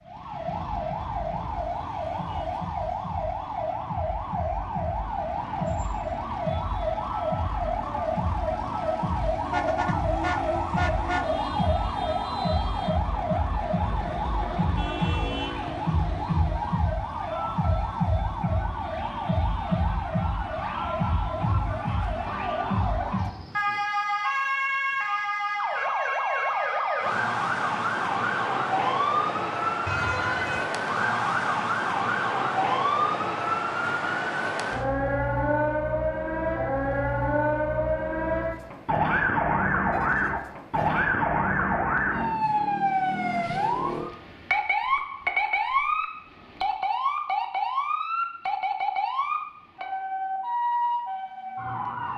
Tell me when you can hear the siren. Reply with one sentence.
The siren can be heard from 0.0 to 52.1 s.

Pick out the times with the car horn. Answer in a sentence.
The car horn can be heard from 9.4 to 11.2 s, from 29.9 to 30.7 s and from 39.9 to 41.0 s.